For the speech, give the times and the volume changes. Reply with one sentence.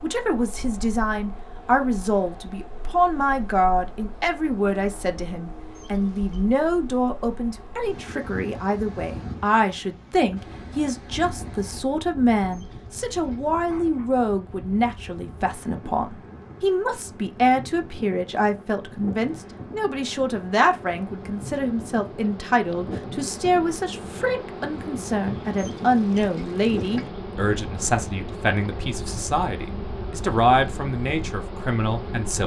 The speech can be heard from 0.0 to 32.4 s, at a steady volume.